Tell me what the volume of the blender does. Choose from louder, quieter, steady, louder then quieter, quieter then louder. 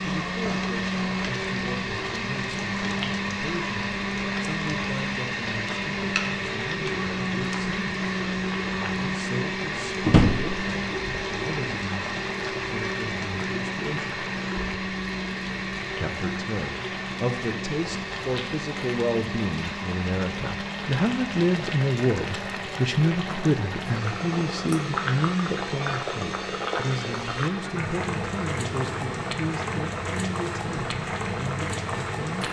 quieter.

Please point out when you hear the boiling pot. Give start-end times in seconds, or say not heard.
0.1-32.4.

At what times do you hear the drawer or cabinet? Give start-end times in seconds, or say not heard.
10.0-10.6.